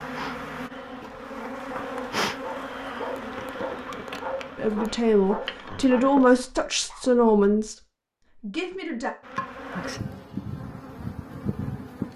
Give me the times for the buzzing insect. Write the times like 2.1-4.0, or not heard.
0.0-6.5, 9.2-12.1.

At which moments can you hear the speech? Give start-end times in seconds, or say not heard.
4.5-7.8, 8.3-9.1.